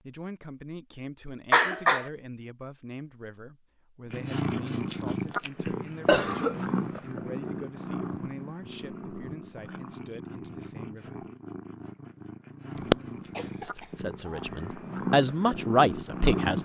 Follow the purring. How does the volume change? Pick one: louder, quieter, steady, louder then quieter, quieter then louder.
quieter then louder.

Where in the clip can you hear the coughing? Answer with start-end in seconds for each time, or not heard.
1.5-2.1, 6.0-7.0, 12.9-13.7.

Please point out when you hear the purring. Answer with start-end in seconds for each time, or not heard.
4.1-16.6.